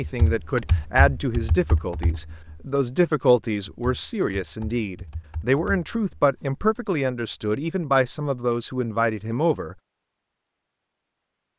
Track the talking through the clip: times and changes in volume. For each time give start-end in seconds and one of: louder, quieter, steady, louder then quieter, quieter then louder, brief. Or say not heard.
0.0-9.8 steady.